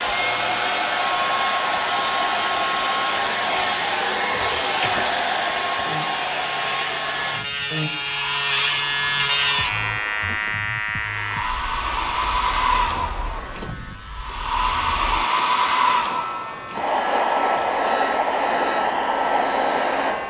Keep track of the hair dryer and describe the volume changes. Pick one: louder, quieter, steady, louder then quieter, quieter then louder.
quieter then louder.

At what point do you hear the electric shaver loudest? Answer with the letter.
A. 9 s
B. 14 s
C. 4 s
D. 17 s
A.